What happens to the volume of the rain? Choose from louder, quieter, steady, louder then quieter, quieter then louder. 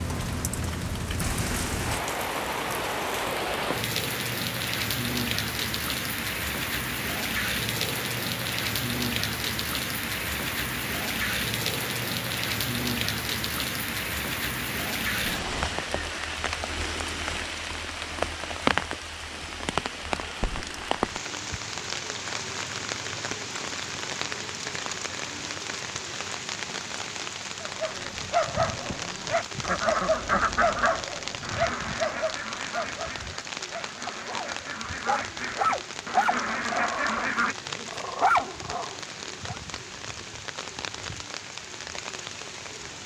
quieter.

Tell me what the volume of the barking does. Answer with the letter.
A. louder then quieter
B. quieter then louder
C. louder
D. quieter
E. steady
B.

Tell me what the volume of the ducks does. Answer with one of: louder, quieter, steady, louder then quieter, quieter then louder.
quieter then louder.